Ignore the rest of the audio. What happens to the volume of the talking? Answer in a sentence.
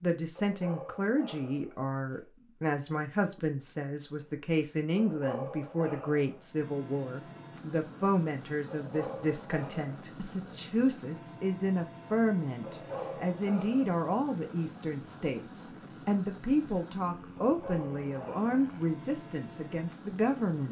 The volume of the talking stays about the same.